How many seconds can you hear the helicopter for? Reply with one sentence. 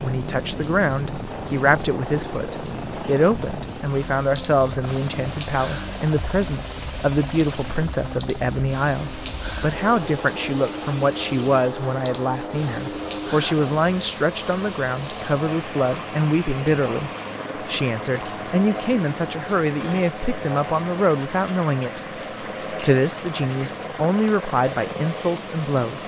The helicopter can be heard for 26 seconds in total.